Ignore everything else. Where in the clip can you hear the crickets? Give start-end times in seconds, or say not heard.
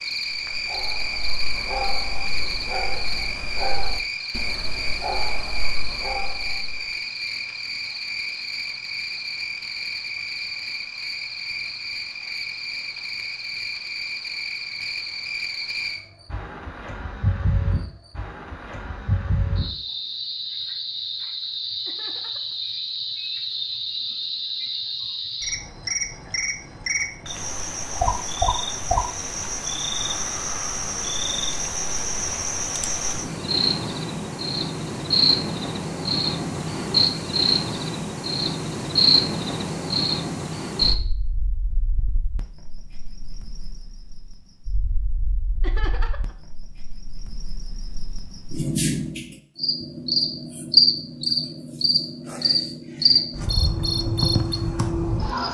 0.0-55.4.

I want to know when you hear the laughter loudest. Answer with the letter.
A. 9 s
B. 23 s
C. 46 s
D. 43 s
C.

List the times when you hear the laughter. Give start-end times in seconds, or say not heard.
21.9-22.6, 45.6-46.4.